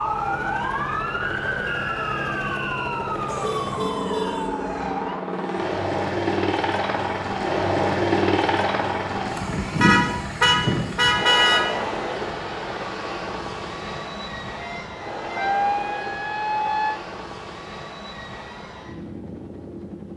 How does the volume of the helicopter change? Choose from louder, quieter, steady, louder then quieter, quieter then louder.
louder then quieter.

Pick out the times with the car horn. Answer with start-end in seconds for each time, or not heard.
3.2-4.5, 9.8-11.6, 14.6-15.6.